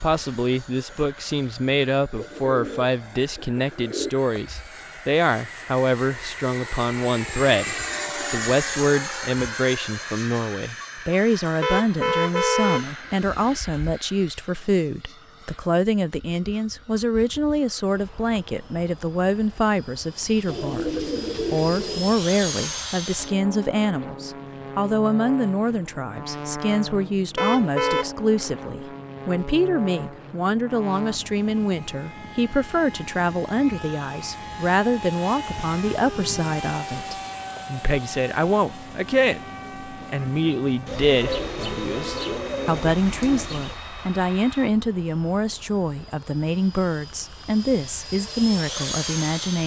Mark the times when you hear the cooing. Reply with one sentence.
The cooing can be heard from 2.1 to 4.1 s, from 20.4 to 22.1 s and from 40.9 to 43.8 s.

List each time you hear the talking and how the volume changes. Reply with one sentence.
You can hear the talking from 0.0 to 49.6 s, at a steady volume.